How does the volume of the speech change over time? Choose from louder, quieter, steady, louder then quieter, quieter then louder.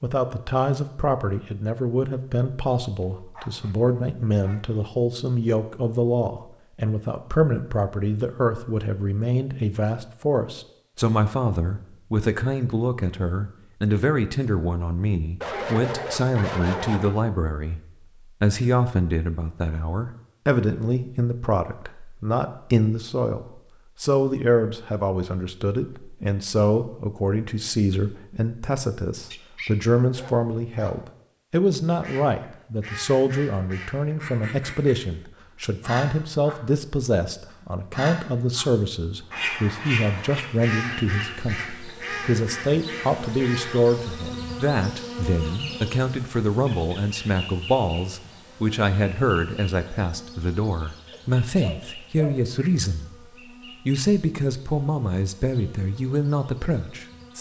steady.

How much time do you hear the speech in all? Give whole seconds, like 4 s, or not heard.
56 s.